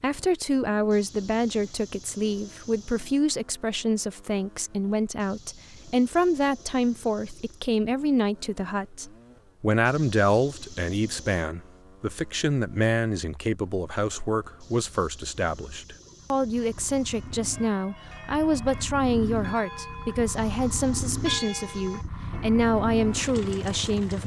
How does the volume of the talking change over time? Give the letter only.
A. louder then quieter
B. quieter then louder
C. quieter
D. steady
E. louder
D.